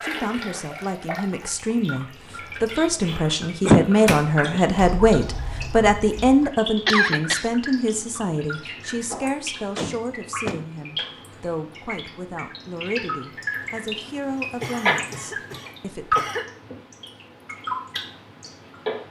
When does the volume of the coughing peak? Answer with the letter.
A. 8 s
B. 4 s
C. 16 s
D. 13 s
B.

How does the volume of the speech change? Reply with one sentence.
The volume of the speech goes up, then down.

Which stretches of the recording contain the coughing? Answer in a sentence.
You can hear the coughing from 3.6 to 4.6 s, from 6.8 to 7.5 s and from 14.6 to 16.5 s.